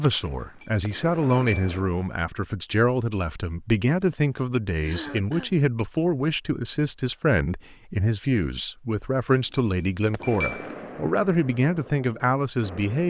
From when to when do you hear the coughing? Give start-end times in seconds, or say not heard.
4.8-5.5.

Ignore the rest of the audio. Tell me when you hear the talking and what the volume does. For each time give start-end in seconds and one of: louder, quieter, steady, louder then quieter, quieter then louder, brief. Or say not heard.
0.0-13.0 steady.